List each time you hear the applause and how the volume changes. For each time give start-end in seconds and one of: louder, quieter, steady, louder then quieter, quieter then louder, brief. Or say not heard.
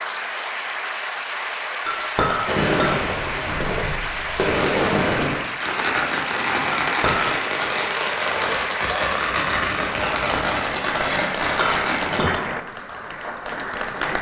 0.0-14.1 steady.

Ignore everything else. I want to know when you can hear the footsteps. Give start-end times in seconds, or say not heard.
not heard.